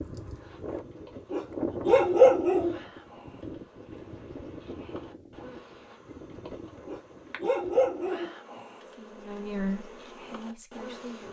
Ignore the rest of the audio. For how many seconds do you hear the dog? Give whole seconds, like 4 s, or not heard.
3 s.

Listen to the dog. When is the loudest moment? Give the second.
2 s.